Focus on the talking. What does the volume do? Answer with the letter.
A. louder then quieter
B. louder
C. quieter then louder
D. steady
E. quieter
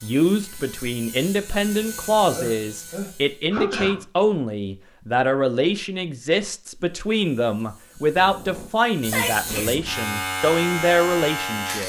D.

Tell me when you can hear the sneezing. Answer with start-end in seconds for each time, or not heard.
2.3-4.0, 8.2-9.9.